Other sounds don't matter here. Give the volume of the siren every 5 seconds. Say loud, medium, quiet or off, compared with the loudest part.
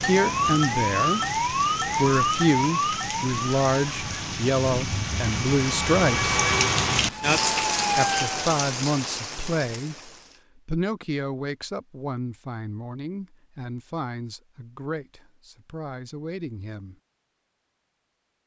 loud, loud, off, off.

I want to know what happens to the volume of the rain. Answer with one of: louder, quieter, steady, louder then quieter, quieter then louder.
louder then quieter.